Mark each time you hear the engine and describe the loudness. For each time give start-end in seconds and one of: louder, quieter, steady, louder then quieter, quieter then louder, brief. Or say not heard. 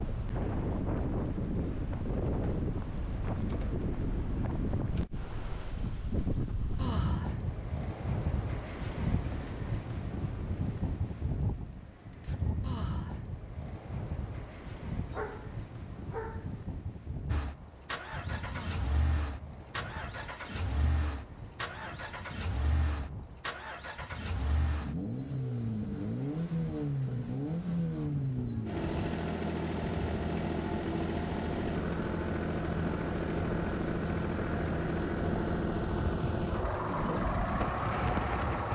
17.2-38.6 louder.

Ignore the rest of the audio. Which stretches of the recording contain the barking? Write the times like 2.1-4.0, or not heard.
15.1-16.6.